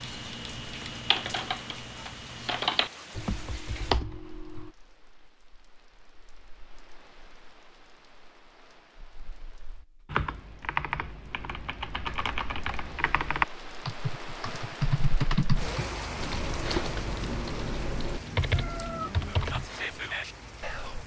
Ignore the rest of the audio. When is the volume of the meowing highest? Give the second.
19 s.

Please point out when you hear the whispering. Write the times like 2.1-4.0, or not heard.
19.2-21.0.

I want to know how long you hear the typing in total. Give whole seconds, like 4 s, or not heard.
14 s.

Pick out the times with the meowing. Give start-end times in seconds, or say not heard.
17.2-19.1.